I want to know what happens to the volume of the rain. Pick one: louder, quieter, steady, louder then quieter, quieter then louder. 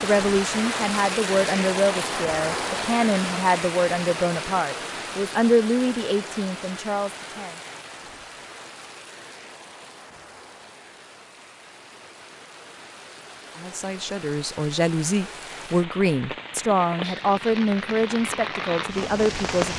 quieter then louder.